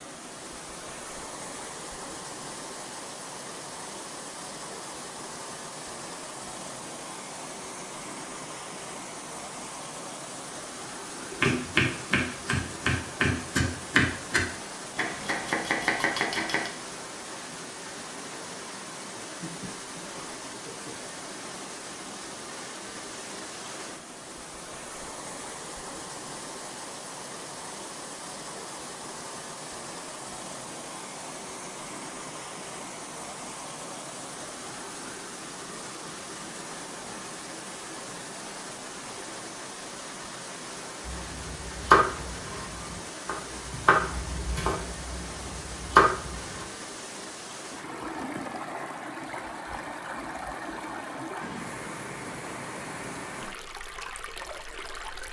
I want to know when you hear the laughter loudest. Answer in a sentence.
The volume of the laughter peaks at 20 seconds.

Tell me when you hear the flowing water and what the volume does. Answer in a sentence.
The flowing water can be heard from 0.0 to 55.2 s, at a steady volume.